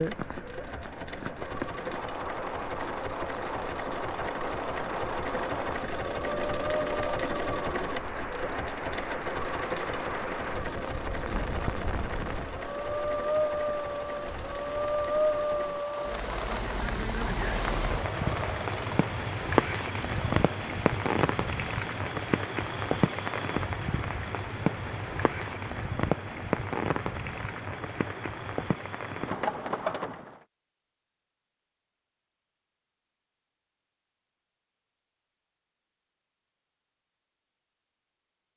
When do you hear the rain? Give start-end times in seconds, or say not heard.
0.0-30.4.